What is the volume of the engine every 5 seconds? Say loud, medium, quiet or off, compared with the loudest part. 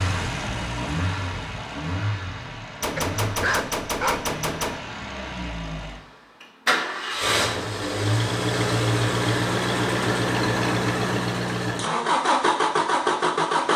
medium, loud, loud.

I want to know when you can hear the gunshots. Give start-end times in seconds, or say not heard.
2.8-4.8.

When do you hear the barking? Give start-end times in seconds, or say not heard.
3.0-4.3.